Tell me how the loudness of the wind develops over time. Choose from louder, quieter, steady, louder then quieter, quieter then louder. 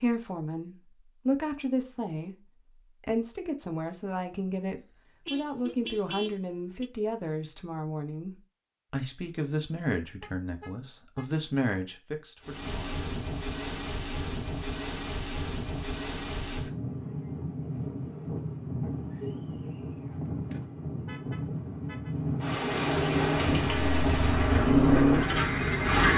louder.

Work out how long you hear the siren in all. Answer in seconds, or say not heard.
not heard.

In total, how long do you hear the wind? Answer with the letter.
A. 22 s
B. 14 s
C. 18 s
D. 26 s
B.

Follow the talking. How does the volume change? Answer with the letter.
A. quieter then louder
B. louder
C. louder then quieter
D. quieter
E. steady
E.